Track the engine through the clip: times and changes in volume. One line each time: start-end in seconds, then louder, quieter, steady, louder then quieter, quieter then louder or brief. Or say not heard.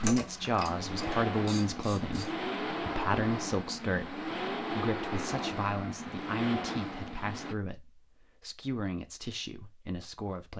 0.1-7.5 steady.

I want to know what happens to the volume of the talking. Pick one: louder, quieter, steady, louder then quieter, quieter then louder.
quieter.